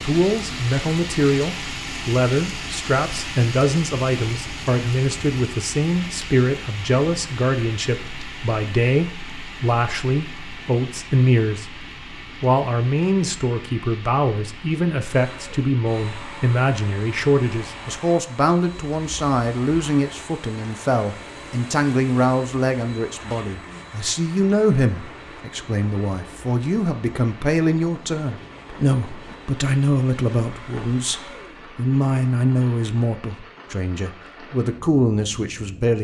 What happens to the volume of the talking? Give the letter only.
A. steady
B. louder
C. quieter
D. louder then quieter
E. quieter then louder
A.